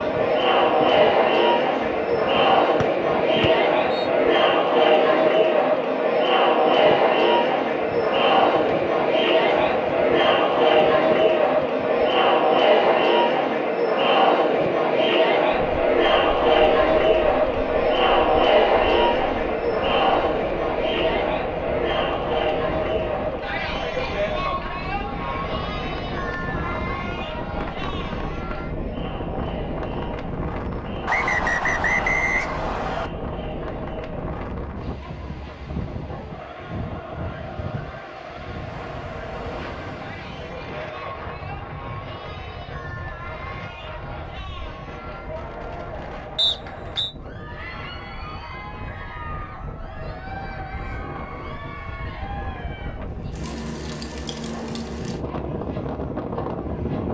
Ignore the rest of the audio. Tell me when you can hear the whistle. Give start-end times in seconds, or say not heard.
2.8-4.1, 31.1-33.1, 46.4-47.1.